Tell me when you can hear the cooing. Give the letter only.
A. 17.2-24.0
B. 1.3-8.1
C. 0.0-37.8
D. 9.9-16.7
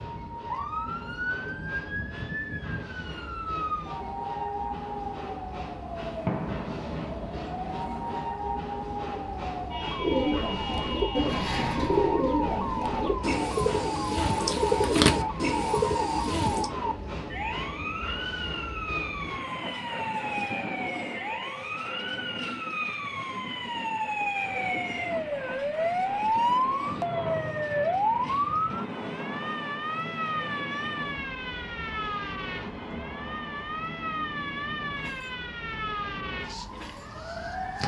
D.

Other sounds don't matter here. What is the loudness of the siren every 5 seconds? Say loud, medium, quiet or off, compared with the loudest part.
medium, medium, medium, medium, medium, loud, medium, medium.